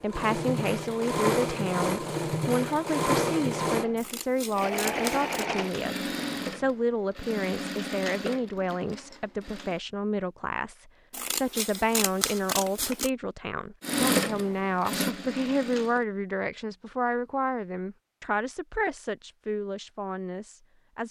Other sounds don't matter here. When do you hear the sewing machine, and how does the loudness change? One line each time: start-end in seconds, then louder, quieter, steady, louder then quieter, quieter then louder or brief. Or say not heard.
0.0-9.8 quieter
13.8-16.1 brief.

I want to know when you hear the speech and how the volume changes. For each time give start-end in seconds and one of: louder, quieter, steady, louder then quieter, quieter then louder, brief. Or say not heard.
0.0-21.0 steady.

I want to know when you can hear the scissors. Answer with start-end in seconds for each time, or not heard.
4.0-5.5, 11.1-13.1.